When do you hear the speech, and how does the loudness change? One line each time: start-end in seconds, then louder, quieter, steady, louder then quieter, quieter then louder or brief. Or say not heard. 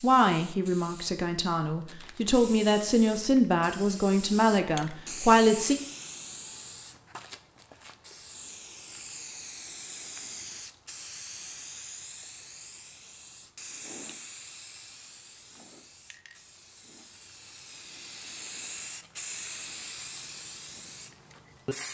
0.0-5.8 louder.